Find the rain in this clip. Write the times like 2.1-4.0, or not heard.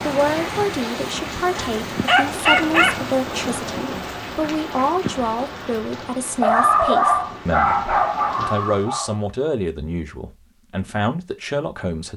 0.0-9.0.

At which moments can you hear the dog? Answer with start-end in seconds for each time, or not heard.
1.4-3.0, 6.4-9.2.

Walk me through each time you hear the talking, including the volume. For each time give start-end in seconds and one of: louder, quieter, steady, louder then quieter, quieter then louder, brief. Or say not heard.
0.0-12.1 steady.